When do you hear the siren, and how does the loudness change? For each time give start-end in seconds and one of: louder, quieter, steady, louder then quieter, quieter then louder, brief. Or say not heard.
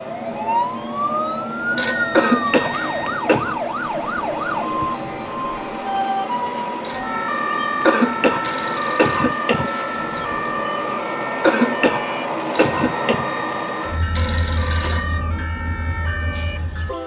0.2-17.0 quieter.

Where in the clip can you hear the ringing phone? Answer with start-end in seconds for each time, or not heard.
1.8-3.3, 6.8-9.2, 12.6-15.2.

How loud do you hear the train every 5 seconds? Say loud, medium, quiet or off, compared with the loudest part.
loud, loud, loud, medium.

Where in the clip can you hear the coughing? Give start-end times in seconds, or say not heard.
2.1-3.6, 7.8-9.8, 11.4-13.2.